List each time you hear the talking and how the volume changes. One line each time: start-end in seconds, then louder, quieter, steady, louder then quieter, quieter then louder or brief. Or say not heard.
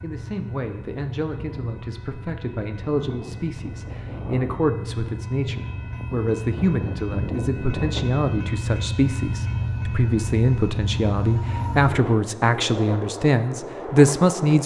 0.0-14.6 louder.